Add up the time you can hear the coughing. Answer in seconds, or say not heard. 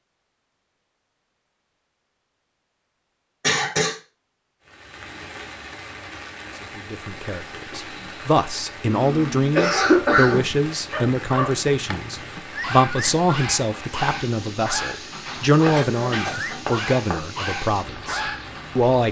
4 s.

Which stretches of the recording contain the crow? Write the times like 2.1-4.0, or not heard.
not heard.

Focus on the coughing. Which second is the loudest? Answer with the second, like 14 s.
10 s.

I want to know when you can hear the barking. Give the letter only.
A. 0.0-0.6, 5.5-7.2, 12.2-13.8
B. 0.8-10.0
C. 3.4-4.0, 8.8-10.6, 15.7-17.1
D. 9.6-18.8
D.